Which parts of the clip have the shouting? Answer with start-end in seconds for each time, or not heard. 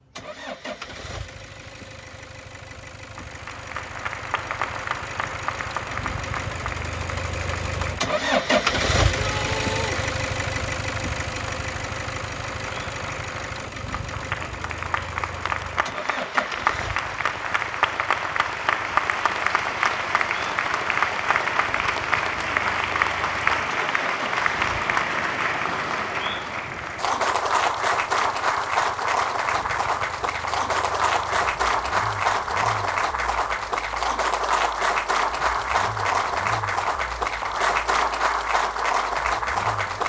9.1-10.0.